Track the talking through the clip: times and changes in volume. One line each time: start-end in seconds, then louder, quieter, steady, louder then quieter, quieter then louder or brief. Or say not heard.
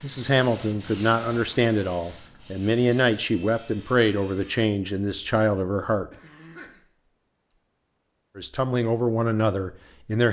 0.0-6.1 steady
8.3-10.2 brief.